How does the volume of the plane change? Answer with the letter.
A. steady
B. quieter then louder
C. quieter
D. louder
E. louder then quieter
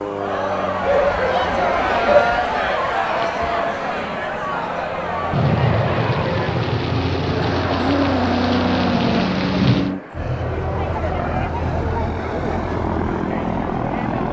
D.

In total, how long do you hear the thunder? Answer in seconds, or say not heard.
5 s.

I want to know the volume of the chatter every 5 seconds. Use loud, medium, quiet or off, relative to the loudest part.
loud, medium, medium.